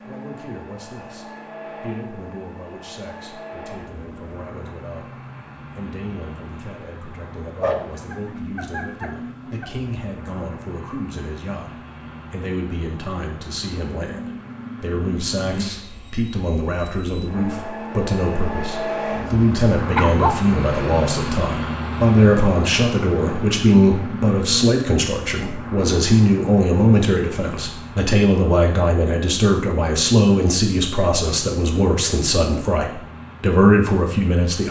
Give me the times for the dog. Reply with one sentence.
The dog can be heard from 7.6 to 9.7 s and from 19.9 to 20.6 s.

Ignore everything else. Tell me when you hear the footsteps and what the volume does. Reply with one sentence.
You can't hear the footsteps here.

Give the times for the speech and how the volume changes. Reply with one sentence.
The speech can be heard from 0.1 to 34.6 s, getting louder.